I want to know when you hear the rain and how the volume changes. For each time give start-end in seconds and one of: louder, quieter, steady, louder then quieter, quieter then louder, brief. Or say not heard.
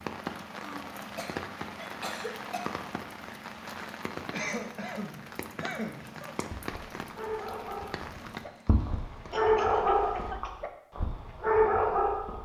0.0-10.3 quieter.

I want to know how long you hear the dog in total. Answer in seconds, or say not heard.
6 s.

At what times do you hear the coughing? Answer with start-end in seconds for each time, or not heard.
0.6-2.6, 4.3-6.4, 9.3-10.5.